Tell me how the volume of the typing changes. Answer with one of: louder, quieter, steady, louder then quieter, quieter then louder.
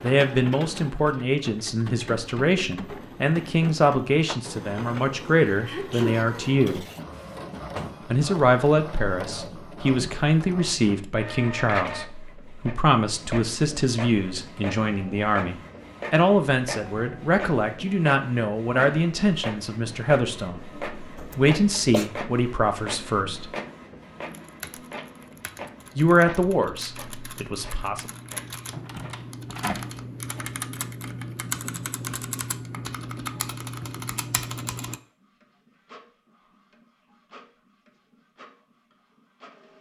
louder.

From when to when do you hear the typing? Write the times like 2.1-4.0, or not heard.
24.2-35.0.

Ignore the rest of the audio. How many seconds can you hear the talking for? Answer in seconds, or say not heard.
24 s.